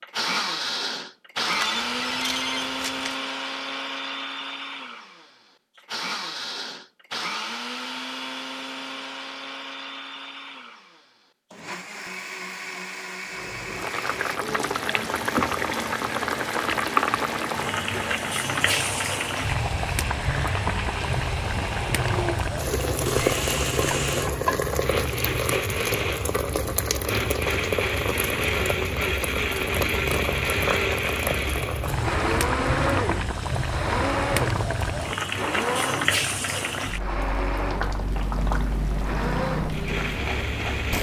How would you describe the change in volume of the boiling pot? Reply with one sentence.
The volume of the boiling pot stays about the same.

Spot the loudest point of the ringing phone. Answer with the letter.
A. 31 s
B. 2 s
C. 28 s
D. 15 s
B.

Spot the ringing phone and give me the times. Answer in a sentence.
You can hear the ringing phone from 1.5 to 3.1 s.